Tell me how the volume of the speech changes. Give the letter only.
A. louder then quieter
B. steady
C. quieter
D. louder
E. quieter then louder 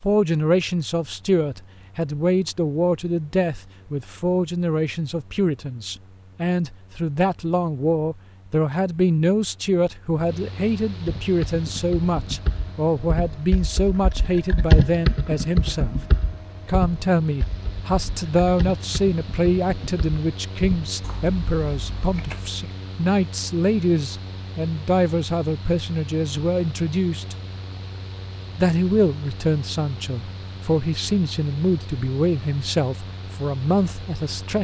B.